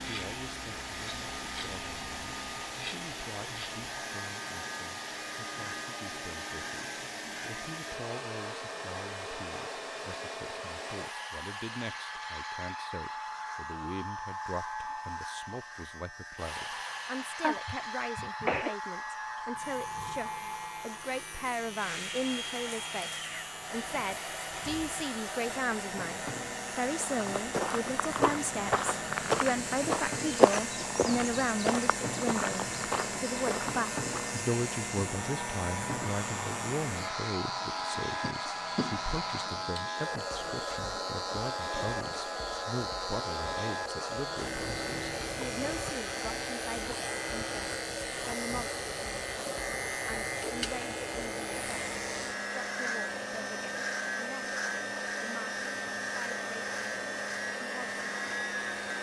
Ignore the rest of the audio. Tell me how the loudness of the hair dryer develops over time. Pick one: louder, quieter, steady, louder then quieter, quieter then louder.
steady.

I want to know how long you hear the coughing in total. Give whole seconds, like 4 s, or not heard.
3 s.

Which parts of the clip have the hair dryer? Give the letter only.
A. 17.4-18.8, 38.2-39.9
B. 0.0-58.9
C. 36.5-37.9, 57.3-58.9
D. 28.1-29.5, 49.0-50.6
B.